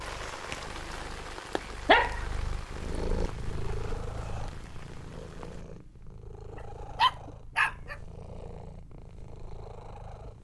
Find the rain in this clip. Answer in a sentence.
The rain can be heard from 0.0 to 5.7 s.